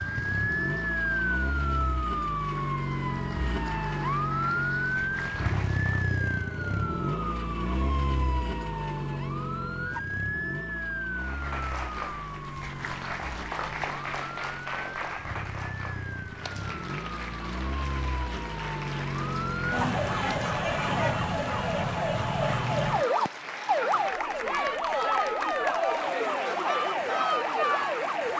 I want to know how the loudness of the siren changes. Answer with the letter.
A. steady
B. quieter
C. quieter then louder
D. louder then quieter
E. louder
C.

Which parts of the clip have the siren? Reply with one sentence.
You can hear the siren from 0.0 to 28.3 s.